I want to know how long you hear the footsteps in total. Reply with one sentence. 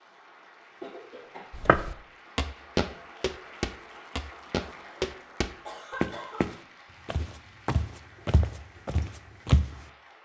You can hear the footsteps for 8 seconds altogether.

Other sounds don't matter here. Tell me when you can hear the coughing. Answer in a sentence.
You can hear the coughing from 0.8 to 1.5 s and from 5.7 to 6.5 s.